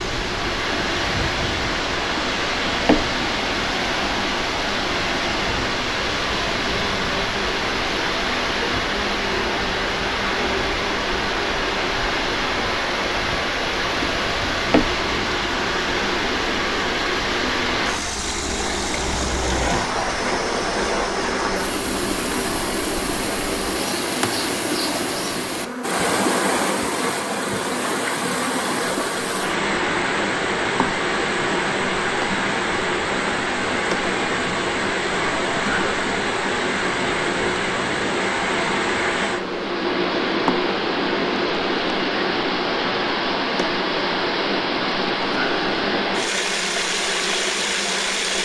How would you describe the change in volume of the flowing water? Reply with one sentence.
The volume of the flowing water stays about the same.